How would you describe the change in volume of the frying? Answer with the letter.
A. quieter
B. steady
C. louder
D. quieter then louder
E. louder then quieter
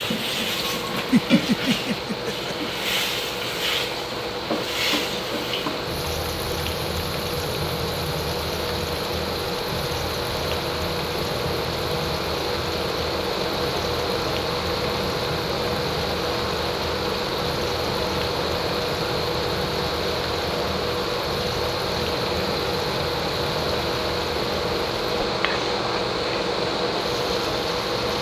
A.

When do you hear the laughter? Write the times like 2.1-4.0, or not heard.
1.1-2.5.